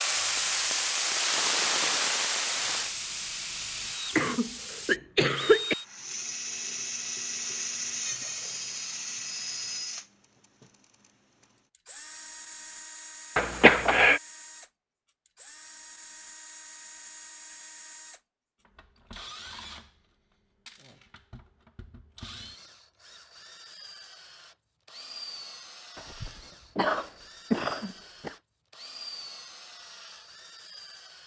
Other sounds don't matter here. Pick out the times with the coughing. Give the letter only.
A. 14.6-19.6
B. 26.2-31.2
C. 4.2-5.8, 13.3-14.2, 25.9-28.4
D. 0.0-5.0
C.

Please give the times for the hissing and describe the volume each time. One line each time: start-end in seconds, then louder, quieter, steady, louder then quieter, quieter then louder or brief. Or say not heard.
0.0-5.0 quieter.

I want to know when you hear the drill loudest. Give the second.
8 s.